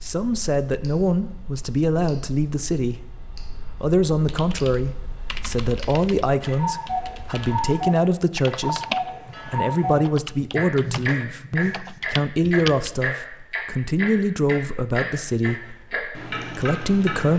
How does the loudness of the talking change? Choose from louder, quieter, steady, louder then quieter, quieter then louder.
steady.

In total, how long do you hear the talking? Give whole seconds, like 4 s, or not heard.
16 s.